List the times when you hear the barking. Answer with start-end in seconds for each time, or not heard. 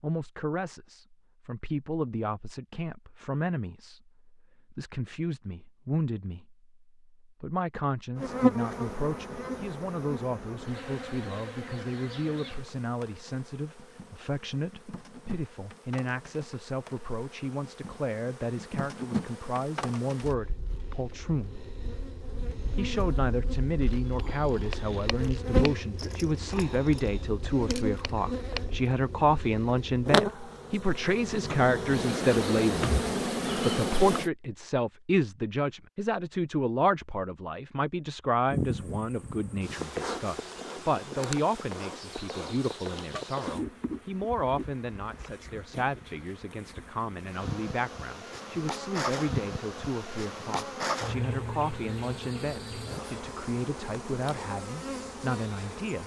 not heard.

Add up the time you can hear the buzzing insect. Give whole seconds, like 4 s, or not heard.
44 s.